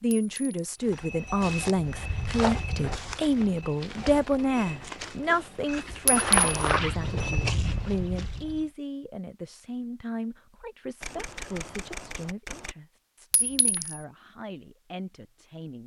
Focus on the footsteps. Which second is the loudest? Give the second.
6 s.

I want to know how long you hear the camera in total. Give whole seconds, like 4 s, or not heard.
2 s.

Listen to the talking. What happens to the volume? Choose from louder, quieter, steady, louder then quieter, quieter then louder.
quieter.